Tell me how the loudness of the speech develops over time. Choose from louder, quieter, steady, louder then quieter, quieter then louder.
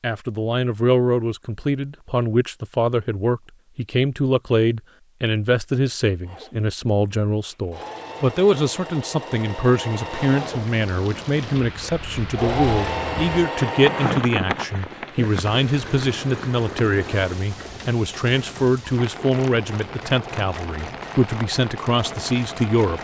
steady.